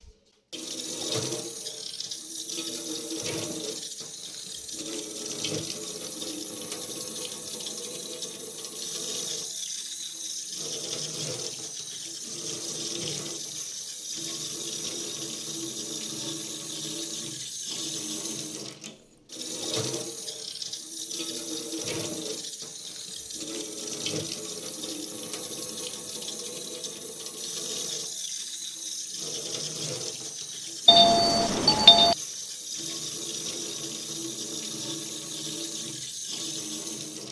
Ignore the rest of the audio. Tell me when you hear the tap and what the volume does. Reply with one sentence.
The tap can be heard from 0.0 to 37.2 s, at a steady volume.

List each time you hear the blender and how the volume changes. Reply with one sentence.
The blender can't be heard in this clip.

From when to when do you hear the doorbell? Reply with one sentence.
The doorbell can be heard from 30.9 to 32.1 s.